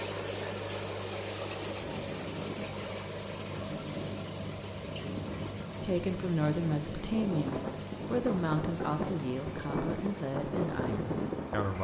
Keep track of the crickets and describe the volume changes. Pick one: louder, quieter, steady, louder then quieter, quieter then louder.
quieter.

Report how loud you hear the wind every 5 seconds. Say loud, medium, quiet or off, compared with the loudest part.
medium, loud, loud.